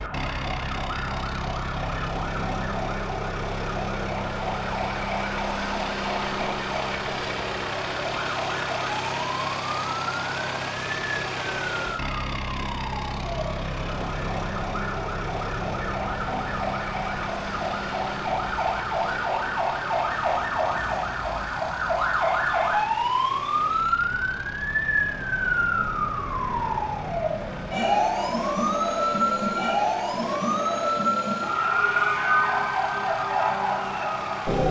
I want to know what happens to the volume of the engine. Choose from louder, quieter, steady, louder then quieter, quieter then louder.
quieter.